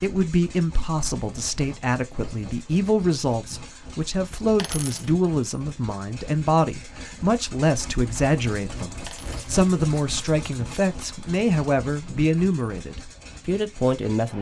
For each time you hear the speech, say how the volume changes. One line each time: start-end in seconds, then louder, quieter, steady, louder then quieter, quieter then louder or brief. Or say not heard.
0.0-14.3 steady.